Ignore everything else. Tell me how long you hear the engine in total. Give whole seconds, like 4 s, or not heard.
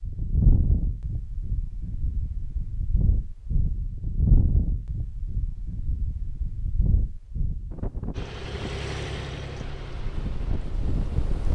3 s.